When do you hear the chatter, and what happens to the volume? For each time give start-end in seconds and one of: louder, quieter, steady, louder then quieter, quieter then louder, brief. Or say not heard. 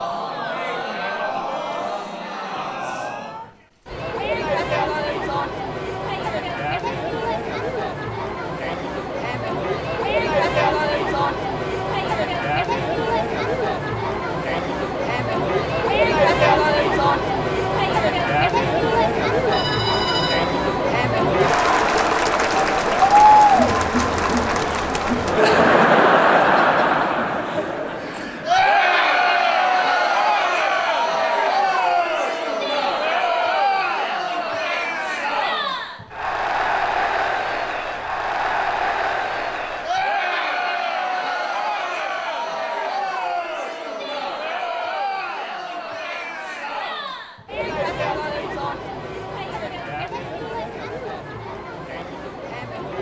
0.0-52.9 louder then quieter.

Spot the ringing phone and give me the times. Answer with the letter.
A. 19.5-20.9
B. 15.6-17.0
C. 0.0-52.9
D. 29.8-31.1
A.